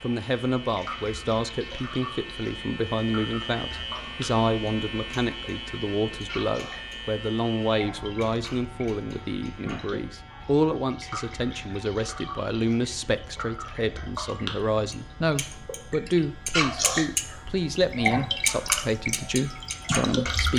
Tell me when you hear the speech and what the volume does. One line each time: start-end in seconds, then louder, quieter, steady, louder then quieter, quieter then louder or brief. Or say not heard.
0.0-20.5 steady.